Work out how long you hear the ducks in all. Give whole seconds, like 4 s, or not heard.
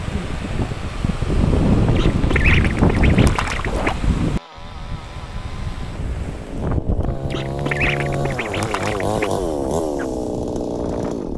4 s.